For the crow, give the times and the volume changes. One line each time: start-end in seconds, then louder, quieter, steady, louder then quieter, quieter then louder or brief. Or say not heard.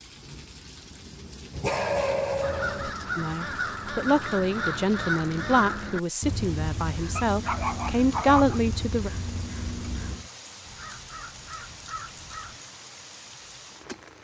2.4-12.6 quieter.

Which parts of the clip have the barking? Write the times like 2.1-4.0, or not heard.
1.5-2.9, 7.2-8.6.